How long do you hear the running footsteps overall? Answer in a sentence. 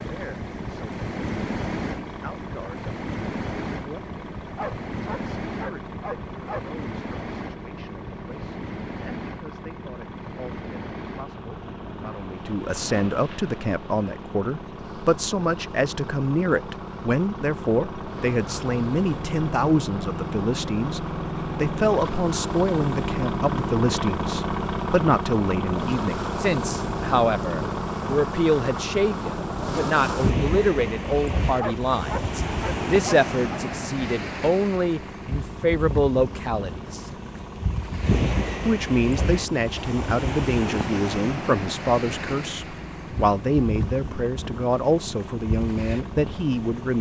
The running footsteps can't be heard in this clip.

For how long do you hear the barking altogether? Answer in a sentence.
The barking can be heard for 4 seconds in total.